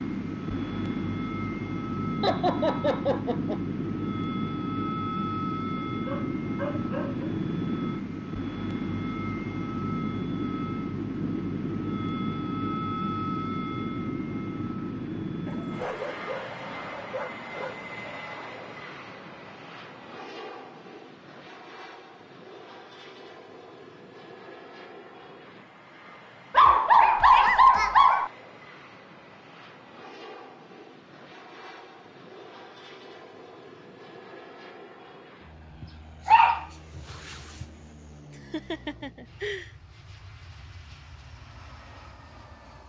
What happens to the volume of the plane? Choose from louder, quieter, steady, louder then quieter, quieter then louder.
quieter.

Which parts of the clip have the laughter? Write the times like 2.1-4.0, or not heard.
2.2-3.6, 38.3-39.7.